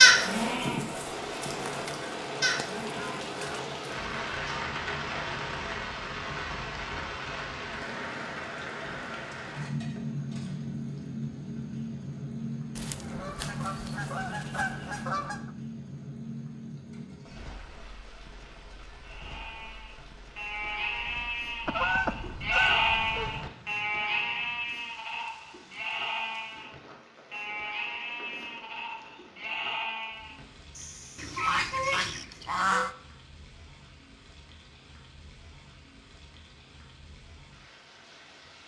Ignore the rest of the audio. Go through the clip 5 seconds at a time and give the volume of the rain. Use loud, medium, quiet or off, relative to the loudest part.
loud, loud, loud, medium, quiet, quiet, quiet, quiet.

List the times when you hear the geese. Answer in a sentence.
You can hear the geese from 1.6 to 3.6 s, from 12.8 to 15.5 s, from 21.6 to 23.5 s and from 31.1 to 33.0 s.